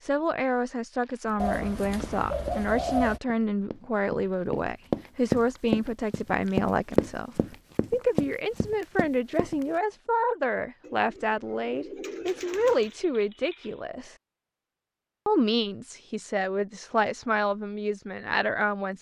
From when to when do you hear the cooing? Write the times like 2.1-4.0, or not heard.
1.4-3.2, 10.8-12.9.